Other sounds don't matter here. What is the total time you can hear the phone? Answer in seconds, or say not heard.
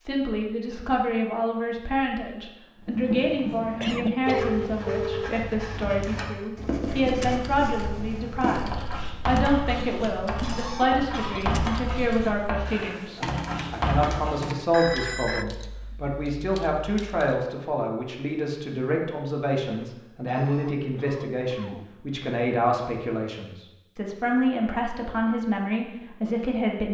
2 s.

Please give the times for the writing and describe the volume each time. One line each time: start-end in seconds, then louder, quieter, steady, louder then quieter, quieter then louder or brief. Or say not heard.
2.8-14.4 steady.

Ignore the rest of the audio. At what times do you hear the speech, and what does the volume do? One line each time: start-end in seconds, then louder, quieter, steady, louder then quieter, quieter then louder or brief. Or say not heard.
0.0-26.8 steady.